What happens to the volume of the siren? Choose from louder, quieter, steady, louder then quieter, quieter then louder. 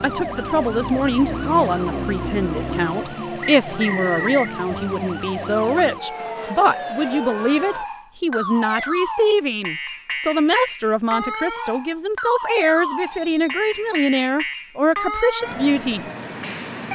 steady.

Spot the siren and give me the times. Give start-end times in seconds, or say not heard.
0.0-16.9.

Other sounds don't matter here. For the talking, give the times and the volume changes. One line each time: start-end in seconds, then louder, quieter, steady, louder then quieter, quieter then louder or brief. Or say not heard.
0.0-16.1 steady.